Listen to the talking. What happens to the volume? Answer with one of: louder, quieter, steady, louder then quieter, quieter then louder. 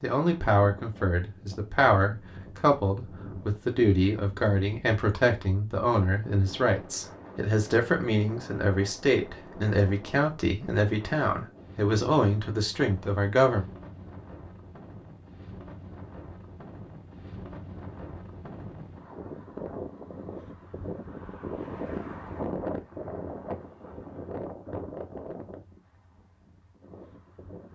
steady.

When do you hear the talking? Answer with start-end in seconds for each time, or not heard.
0.0-13.7.